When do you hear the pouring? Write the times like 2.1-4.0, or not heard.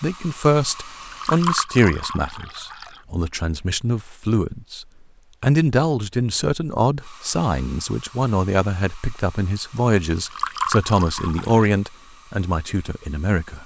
0.8-3.0, 10.1-11.7.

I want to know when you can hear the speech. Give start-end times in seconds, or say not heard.
0.0-13.6.